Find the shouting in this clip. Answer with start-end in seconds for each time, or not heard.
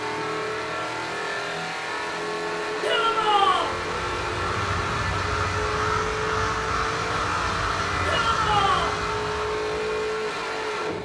2.8-3.7, 8.1-8.9.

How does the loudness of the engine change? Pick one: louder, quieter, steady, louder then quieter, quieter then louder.
steady.